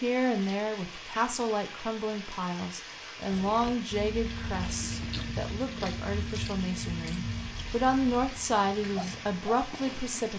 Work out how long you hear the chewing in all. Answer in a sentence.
You can hear the chewing for 6 seconds altogether.